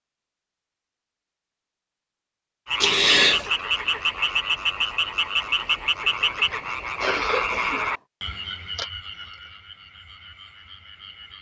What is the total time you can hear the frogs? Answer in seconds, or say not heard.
9 s.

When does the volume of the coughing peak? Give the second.
3 s.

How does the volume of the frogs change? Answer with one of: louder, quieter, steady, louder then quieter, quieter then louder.
quieter.